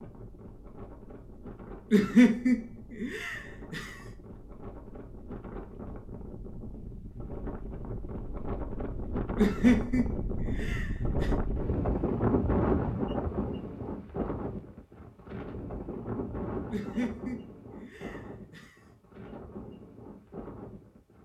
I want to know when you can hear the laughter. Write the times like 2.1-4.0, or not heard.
1.9-4.0, 9.3-11.3, 16.7-18.8.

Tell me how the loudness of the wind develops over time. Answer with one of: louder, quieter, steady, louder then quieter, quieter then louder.
louder then quieter.